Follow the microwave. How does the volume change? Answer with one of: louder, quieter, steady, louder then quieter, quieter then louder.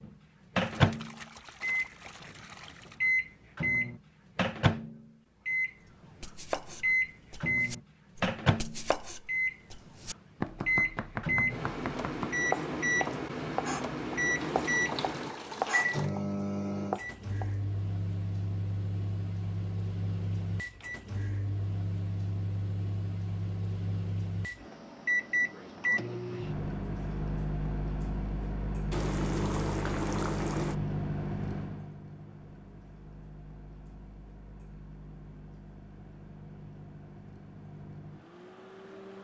quieter.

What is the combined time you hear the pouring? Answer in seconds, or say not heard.
6 s.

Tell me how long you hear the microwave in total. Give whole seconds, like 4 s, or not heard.
39 s.